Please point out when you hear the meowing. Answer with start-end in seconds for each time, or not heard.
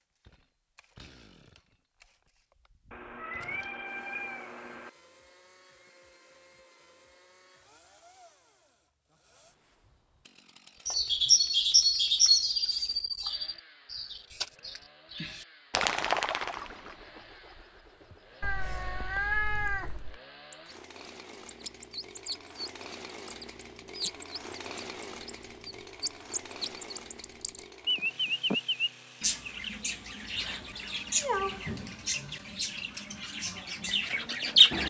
2.9-4.9, 18.4-20.2, 30.6-31.6.